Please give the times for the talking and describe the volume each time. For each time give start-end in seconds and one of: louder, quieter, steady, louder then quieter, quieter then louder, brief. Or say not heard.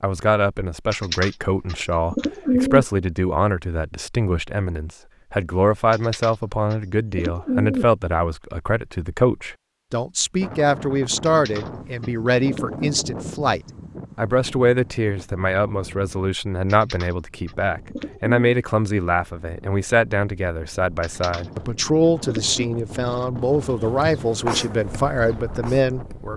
0.0-26.3 steady.